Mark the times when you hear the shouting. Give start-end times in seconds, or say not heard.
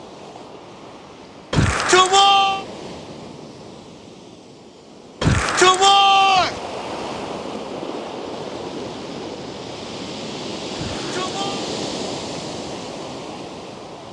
1.5-2.6, 5.2-6.6, 10.8-11.7.